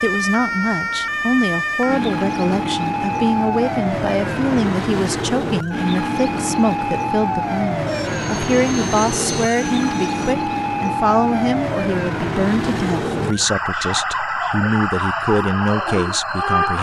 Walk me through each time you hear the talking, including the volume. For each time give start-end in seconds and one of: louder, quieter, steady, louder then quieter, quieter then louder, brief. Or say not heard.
0.0-16.7 steady.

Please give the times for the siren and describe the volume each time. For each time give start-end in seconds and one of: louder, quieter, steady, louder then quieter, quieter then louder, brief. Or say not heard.
0.0-16.7 steady.